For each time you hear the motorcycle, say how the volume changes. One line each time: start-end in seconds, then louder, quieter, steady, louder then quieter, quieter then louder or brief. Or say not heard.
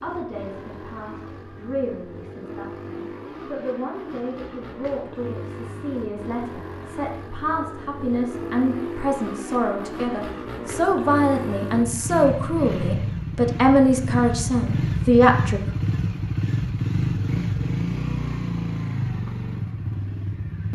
0.0-20.7 louder.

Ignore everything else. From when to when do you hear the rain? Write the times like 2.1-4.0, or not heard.
not heard.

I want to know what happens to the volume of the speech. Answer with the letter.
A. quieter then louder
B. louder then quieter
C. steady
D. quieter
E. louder
E.